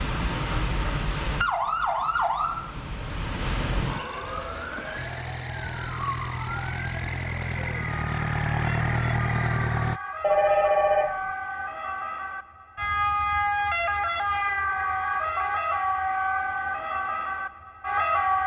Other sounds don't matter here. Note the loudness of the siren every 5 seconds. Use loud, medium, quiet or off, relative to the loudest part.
loud, medium, loud, loud.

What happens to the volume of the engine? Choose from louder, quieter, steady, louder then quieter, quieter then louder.
louder.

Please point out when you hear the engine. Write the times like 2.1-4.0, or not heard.
5.0-10.0.